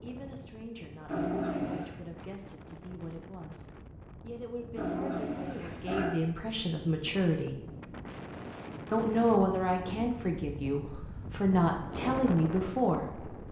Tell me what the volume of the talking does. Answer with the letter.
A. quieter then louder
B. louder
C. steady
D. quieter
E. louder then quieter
B.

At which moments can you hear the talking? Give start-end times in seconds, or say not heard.
0.0-7.5, 8.9-13.3.